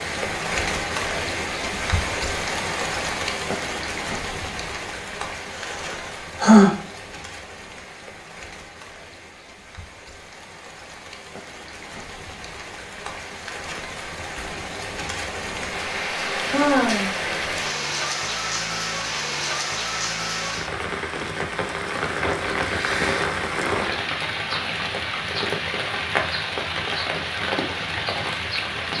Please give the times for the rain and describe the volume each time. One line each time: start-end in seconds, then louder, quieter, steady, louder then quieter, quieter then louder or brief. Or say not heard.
0.0-28.9 quieter then louder.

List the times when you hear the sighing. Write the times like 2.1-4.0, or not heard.
5.5-6.7, 16.4-17.1, 22.6-23.2.